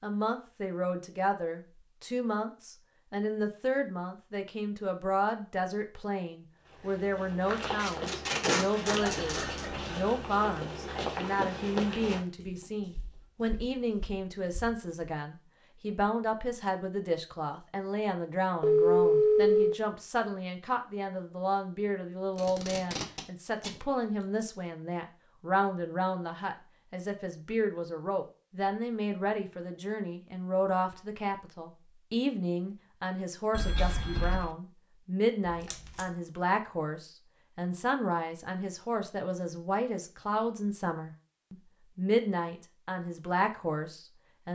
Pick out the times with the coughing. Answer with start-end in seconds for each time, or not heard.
not heard.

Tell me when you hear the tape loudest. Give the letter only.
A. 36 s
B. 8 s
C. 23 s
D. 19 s
B.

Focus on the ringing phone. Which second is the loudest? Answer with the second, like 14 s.
19 s.